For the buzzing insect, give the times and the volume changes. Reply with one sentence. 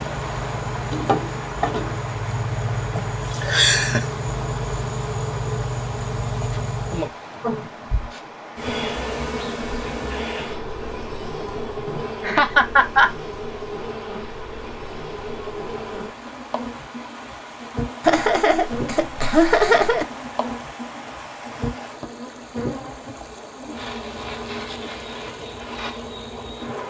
You can hear the buzzing insect from 0.0 to 26.8 s, getting quieter.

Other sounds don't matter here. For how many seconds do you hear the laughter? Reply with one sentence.
You can hear the laughter for 5 seconds altogether.